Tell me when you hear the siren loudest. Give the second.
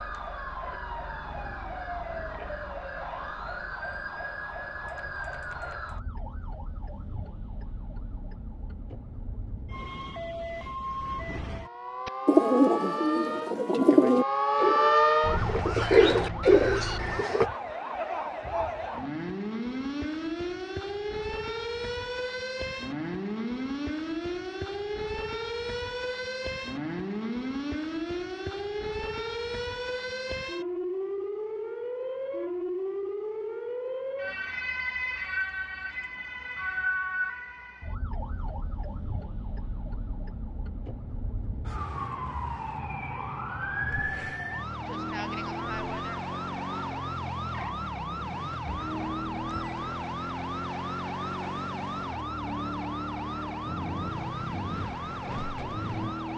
15 s.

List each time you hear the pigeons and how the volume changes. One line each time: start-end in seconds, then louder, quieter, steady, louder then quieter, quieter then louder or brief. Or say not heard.
12.1-17.4 quieter then louder.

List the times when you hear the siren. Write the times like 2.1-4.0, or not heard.
0.0-56.3.